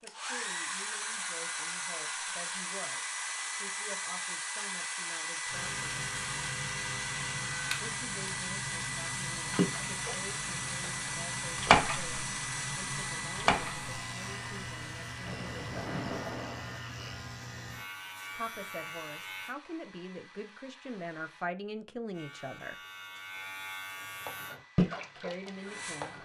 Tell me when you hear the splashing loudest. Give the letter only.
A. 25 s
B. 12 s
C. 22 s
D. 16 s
B.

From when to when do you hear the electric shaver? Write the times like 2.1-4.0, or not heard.
5.5-19.6, 22.1-24.6.